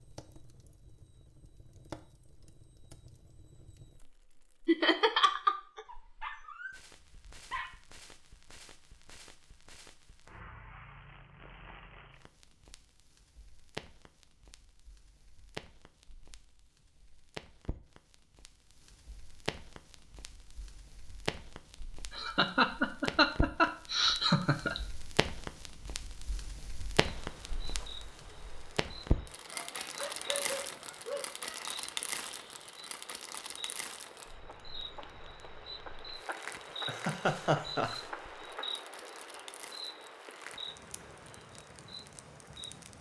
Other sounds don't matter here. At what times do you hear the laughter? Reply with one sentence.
The laughter can be heard from 4.7 to 5.8 s, from 22.1 to 24.8 s and from 36.9 to 38.0 s.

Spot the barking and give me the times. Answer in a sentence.
You can hear the barking from 5.8 to 7.7 s and from 29.5 to 31.2 s.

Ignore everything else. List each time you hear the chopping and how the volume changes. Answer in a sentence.
You can't hear the chopping here.